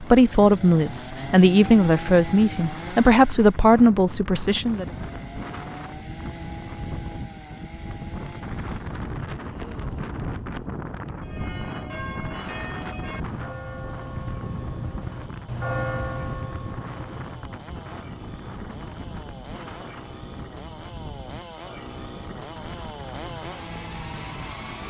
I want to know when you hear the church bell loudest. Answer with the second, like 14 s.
16 s.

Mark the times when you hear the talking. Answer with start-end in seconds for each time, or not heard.
0.0-4.8.